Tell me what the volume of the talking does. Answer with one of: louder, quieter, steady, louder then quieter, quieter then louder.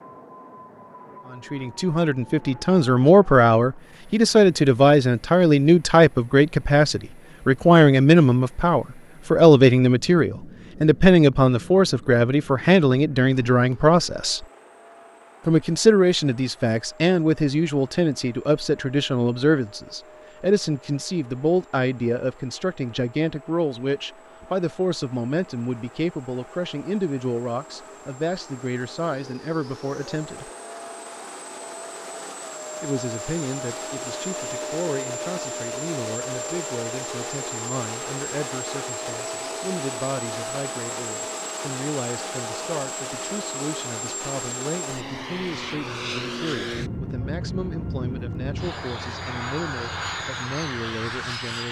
quieter.